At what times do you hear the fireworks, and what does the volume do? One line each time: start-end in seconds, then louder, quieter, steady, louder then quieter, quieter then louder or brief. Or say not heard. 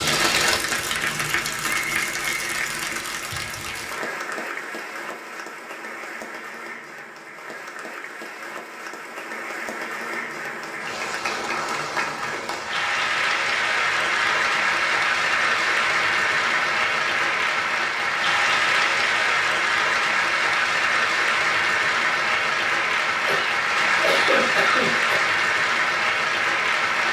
not heard.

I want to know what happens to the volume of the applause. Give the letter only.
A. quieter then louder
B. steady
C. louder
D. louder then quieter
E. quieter
A.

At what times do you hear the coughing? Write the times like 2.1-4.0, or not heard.
23.2-25.2.